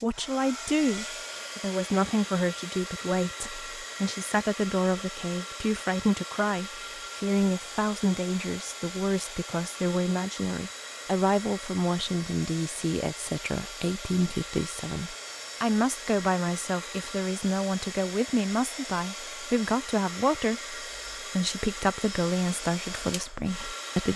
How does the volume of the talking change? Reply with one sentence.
The loudness of the talking stays about the same.